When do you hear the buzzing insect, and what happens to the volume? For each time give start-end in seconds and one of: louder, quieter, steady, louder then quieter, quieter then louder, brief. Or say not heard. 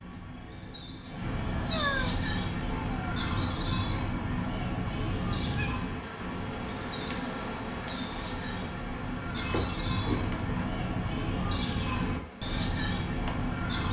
2.1-13.8 louder then quieter.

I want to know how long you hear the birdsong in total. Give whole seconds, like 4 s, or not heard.
14 s.